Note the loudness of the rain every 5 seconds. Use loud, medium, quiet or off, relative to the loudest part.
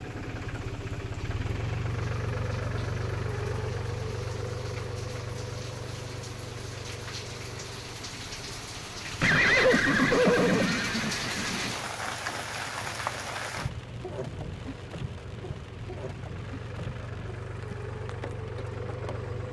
quiet, medium, loud, medium.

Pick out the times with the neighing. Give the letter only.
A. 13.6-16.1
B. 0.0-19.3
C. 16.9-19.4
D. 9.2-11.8
D.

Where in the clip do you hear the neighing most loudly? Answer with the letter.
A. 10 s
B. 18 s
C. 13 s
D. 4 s
A.